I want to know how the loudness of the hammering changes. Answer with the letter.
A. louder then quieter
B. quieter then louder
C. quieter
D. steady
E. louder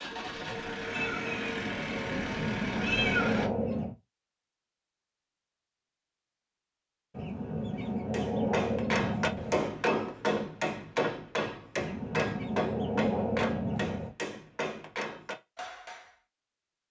C.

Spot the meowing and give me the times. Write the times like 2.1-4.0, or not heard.
0.9-3.5.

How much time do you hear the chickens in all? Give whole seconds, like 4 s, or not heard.
7 s.